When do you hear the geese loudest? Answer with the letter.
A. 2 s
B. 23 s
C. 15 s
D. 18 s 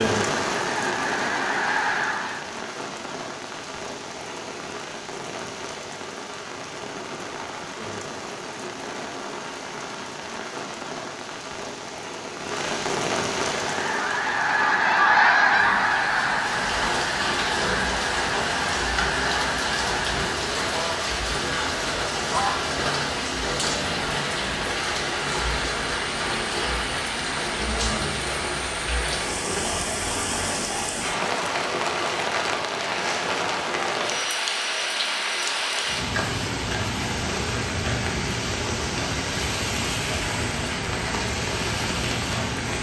C.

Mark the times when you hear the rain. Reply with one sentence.
You can hear the rain from 0.0 to 42.7 s.